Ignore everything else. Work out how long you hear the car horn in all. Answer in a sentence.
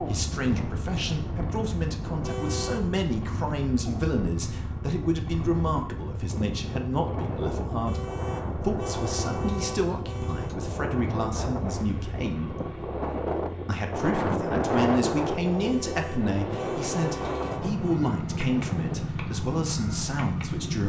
You can hear the car horn for 6 seconds altogether.